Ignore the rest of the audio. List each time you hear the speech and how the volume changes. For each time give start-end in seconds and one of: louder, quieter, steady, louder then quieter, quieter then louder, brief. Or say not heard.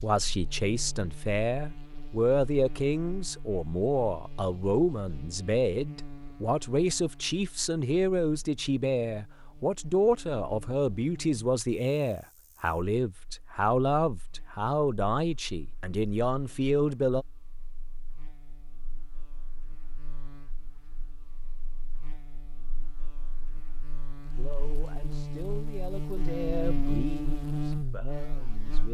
0.0-17.2 steady
24.4-28.8 louder then quieter.